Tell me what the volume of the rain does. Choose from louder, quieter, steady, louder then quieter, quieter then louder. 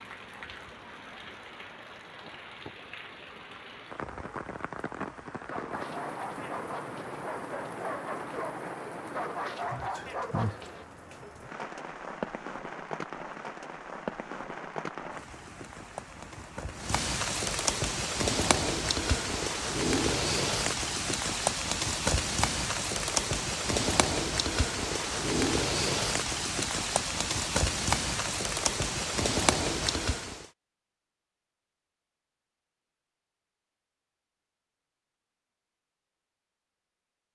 louder.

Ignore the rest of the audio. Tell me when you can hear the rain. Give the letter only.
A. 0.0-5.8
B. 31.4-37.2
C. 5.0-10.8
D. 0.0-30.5
D.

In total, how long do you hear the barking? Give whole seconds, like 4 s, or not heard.
6 s.